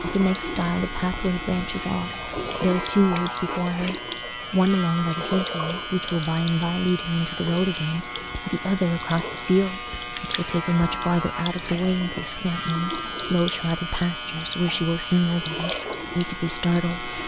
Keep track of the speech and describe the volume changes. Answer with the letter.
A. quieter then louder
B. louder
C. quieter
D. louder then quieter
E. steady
E.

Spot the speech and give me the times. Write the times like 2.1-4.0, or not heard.
0.0-17.1.